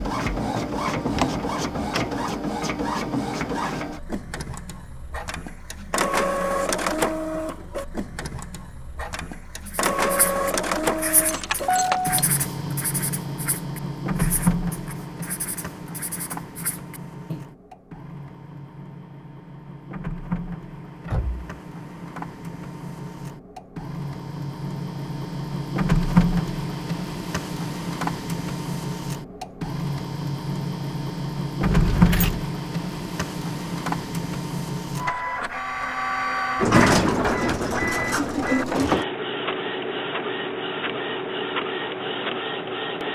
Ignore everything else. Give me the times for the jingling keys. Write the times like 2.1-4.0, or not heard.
11.2-12.2, 31.6-32.5.